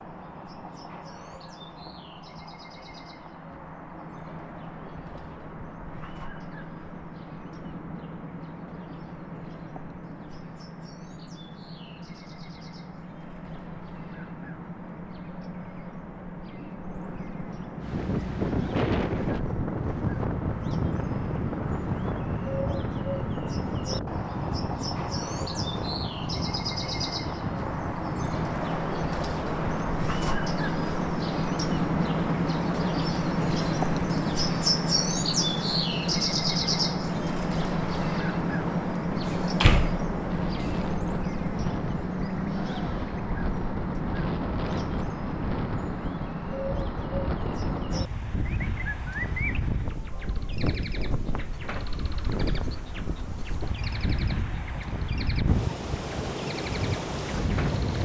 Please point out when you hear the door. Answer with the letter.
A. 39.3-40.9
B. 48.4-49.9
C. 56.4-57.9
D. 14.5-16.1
A.